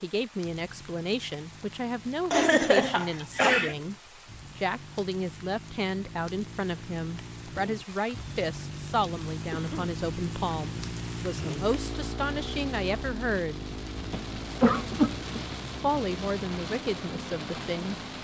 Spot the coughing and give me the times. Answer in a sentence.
The coughing can be heard from 2.3 to 3.8 s, from 9.5 to 9.9 s and from 14.0 to 15.4 s.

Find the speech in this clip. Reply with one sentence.
The speech can be heard from 0.0 to 4.0 s, from 4.5 to 13.7 s and from 15.8 to 17.9 s.